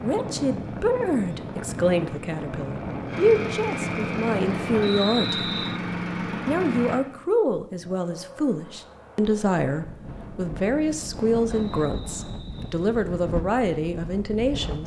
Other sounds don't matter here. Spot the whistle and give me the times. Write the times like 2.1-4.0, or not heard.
4.8-5.8, 11.5-12.8.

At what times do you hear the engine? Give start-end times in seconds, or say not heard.
0.0-7.0.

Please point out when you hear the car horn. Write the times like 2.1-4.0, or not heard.
not heard.